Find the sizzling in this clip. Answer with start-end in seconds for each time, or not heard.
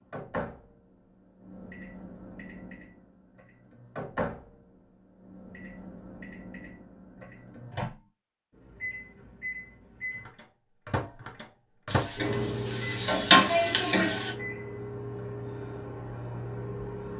11.8-14.3.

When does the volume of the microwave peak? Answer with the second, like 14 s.
12 s.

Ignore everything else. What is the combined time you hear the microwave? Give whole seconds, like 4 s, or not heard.
17 s.